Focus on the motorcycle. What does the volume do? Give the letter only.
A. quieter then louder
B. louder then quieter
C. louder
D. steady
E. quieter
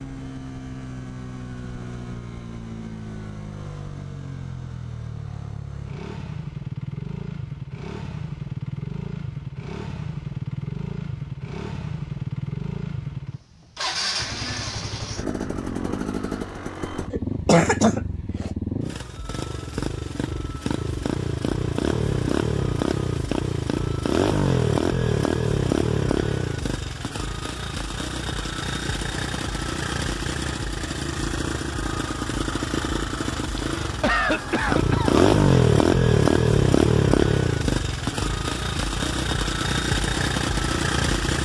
C.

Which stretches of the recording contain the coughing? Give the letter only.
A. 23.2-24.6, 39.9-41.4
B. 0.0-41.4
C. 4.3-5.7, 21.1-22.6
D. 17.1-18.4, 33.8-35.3
D.